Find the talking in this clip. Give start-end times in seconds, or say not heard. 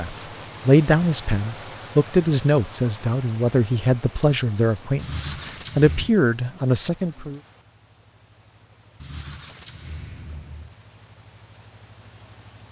0.0-7.4.